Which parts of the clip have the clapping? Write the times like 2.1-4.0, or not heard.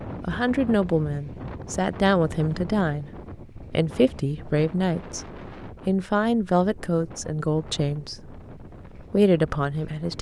not heard.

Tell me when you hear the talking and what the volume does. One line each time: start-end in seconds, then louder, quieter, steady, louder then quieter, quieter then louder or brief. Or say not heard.
0.2-10.1 steady.